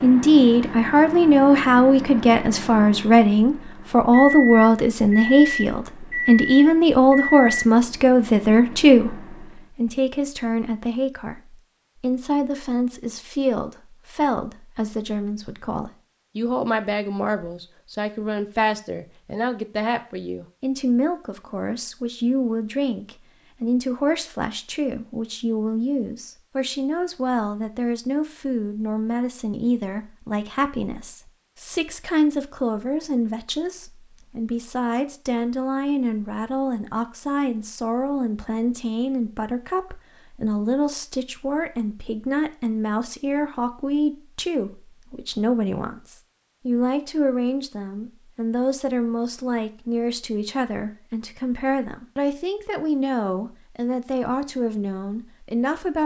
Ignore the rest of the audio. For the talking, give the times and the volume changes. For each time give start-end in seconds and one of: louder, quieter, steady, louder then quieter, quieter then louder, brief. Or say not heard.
0.0-56.0 quieter.